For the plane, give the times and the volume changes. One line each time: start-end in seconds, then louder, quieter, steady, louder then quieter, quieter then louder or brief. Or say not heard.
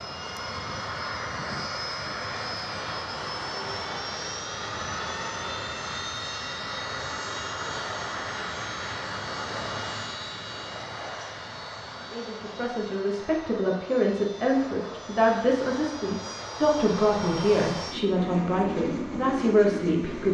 0.0-20.2 quieter then louder.